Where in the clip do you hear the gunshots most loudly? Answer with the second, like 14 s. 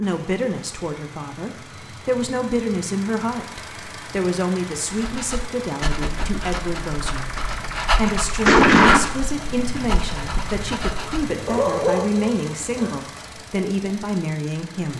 9 s.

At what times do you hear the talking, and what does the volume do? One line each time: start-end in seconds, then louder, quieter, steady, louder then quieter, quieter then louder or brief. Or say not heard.
0.0-14.9 steady.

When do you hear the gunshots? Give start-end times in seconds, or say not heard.
7.0-9.0.